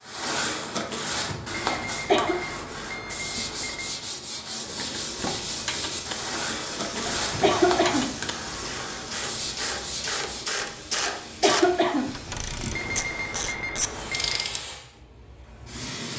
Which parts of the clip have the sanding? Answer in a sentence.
You can hear the sanding from 0.0 to 10.6 s.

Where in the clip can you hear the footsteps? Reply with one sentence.
The footsteps can't be heard in this clip.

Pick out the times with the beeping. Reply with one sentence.
The beeping can be heard from 1.6 to 4.0 s and from 12.7 to 14.5 s.